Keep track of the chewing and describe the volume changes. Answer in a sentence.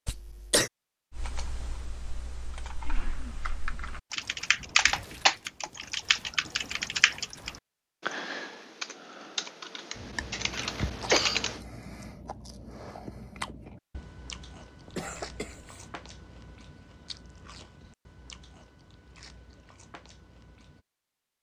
The volume of the chewing goes down.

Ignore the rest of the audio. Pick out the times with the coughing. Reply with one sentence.
You can hear the coughing from 0.1 to 0.7 s, from 10.5 to 11.4 s and from 14.8 to 15.8 s.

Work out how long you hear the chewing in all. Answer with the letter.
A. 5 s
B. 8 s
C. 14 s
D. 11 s
D.